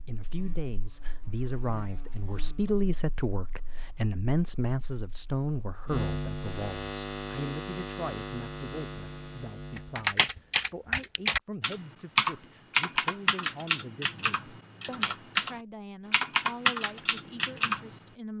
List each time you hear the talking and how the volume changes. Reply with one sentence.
You can hear the talking from 0.1 to 18.3 s, getting quieter.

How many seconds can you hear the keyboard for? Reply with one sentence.
You can hear the keyboard for 8 seconds altogether.